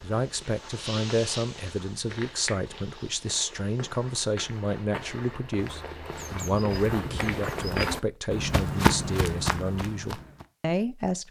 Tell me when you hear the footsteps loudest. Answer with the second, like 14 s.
9 s.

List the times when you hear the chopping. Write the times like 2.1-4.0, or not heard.
not heard.